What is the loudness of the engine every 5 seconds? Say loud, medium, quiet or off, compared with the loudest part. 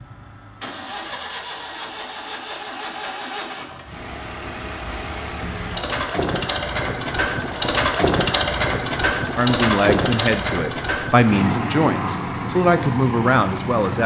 medium, loud, loud.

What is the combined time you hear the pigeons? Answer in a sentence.
You can't hear the pigeons here.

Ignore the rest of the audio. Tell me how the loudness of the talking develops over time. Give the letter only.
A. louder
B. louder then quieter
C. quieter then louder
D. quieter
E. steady
E.